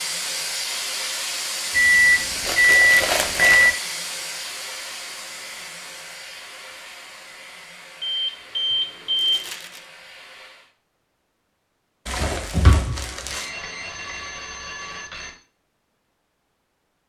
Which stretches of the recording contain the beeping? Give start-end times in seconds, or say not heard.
1.7-3.7, 8.0-9.4, 13.3-15.3.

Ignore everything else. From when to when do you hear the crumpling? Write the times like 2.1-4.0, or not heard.
2.5-3.8, 9.2-9.8, 12.1-13.5.